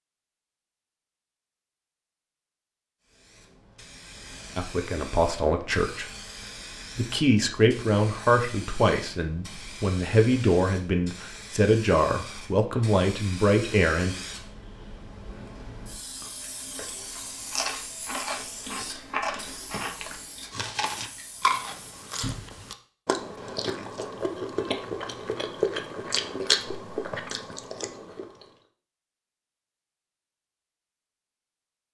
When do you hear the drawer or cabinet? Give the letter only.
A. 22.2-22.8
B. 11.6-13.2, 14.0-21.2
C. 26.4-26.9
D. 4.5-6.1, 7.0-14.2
A.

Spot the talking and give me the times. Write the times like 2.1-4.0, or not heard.
4.5-6.1, 7.0-14.2.